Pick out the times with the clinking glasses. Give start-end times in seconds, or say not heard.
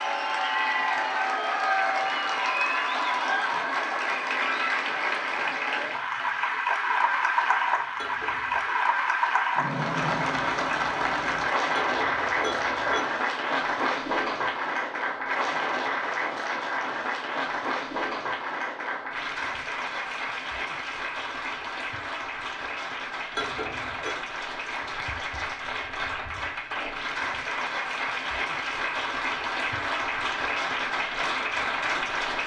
8.0-8.8, 11.7-13.1, 23.4-24.2.